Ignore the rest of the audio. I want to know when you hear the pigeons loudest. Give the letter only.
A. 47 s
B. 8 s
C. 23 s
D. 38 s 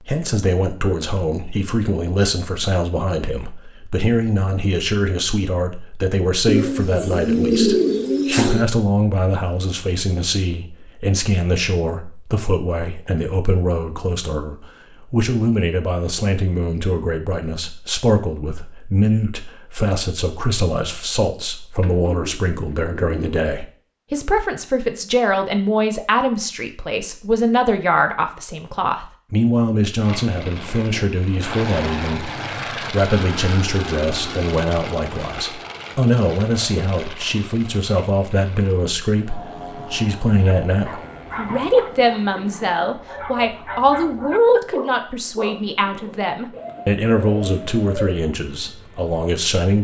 B.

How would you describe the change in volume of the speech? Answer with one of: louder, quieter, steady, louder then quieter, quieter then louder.
steady.